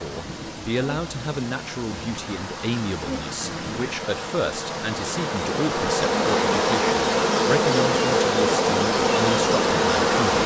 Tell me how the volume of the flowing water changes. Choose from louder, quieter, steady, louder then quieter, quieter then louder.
louder.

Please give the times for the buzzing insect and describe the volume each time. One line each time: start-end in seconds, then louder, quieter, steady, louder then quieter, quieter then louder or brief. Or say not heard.
0.0-10.4 louder.